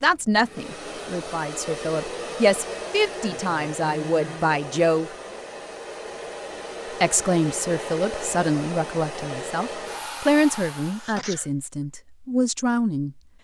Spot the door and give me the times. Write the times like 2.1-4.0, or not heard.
not heard.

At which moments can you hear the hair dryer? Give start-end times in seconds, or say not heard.
0.0-11.2.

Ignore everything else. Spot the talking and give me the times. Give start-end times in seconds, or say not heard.
0.0-5.1, 7.0-13.2.